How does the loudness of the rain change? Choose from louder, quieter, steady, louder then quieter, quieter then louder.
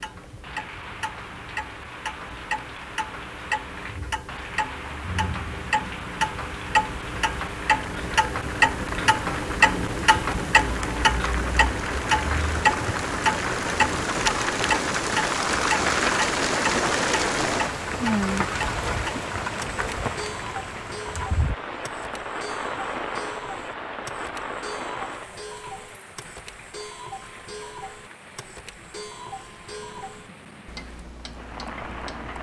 louder then quieter.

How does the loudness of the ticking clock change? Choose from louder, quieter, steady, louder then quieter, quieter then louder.
louder then quieter.